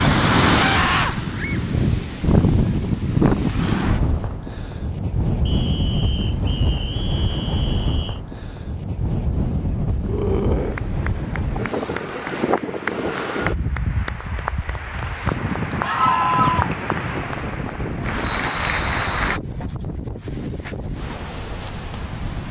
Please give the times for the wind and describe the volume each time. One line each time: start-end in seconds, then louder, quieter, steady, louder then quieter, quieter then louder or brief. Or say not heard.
0.0-22.4 quieter.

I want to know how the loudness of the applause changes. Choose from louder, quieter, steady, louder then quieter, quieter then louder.
louder.